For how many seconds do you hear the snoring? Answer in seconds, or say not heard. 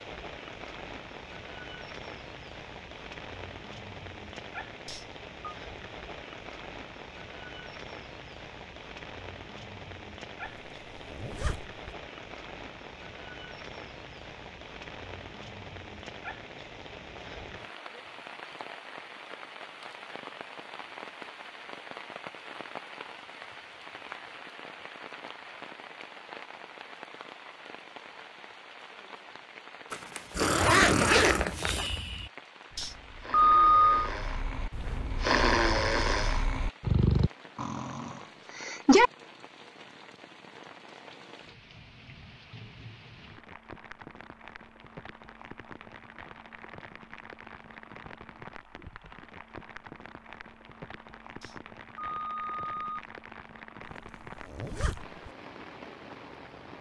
9 s.